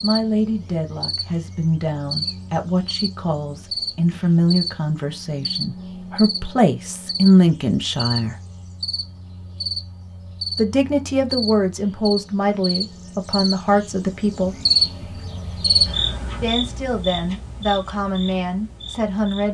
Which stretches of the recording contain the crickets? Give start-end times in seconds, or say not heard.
0.0-19.4.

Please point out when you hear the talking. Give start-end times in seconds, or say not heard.
0.0-8.3, 10.6-14.6, 16.4-19.4.